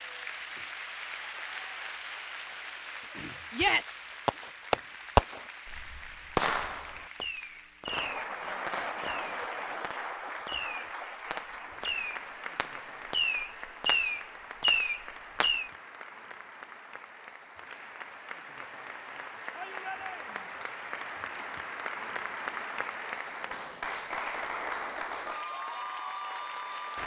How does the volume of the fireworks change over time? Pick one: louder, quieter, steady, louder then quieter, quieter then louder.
quieter then louder.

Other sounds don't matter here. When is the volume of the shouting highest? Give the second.
4 s.